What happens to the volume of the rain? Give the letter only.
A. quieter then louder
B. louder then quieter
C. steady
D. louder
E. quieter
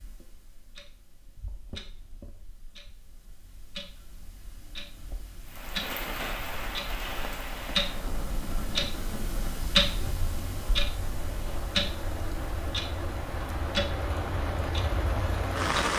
A.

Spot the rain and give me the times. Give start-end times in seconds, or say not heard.
5.5-15.9.